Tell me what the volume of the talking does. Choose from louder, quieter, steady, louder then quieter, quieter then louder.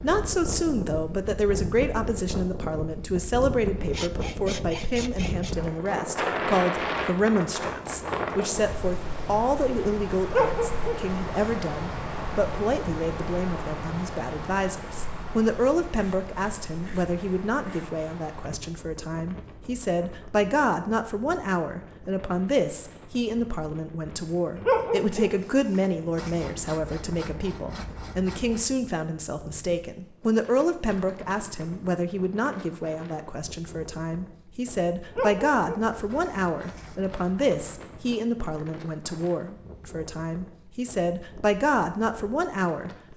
steady.